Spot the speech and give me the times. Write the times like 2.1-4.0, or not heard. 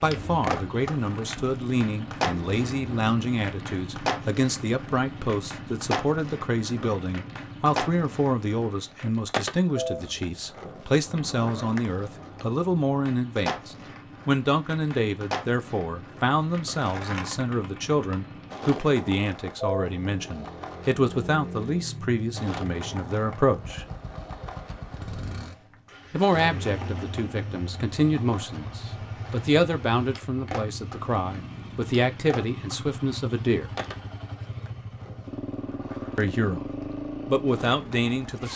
0.0-23.9, 26.1-33.7, 36.1-38.5.